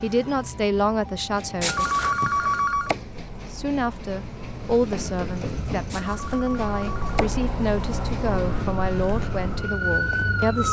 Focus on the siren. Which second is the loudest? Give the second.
10 s.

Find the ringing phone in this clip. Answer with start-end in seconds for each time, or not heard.
1.6-3.0, 5.9-7.3.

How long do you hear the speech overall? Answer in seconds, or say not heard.
9 s.